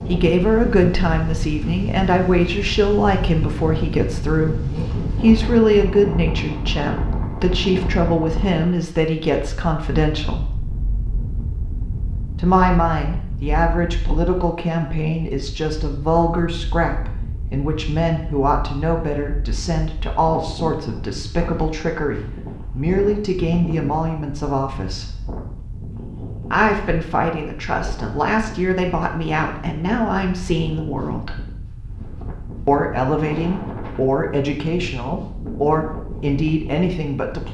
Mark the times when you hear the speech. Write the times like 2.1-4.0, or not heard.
0.0-10.6, 12.3-25.1, 26.4-31.4, 32.6-37.4.